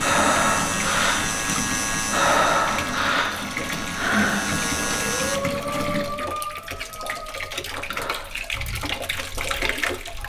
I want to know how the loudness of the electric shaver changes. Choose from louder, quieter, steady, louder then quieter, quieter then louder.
quieter then louder.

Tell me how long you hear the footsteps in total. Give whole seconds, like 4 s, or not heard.
not heard.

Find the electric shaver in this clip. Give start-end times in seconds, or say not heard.
0.0-5.4.